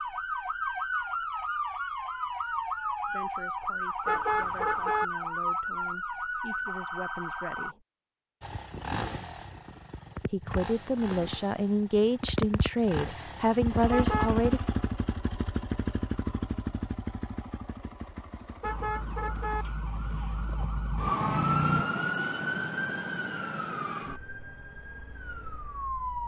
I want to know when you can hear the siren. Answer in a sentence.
You can hear the siren from 0.0 to 7.8 s and from 18.6 to 26.2 s.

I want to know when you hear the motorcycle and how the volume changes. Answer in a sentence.
You can hear the motorcycle from 8.4 to 21.9 s, getting louder then quieter.